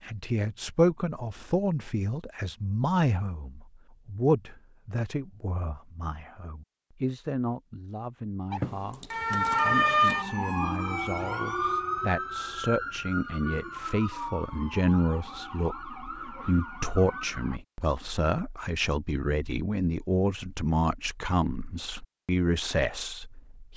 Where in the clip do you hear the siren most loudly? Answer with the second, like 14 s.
10 s.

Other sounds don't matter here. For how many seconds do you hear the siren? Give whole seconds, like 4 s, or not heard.
9 s.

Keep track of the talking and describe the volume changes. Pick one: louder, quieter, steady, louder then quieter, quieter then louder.
quieter then louder.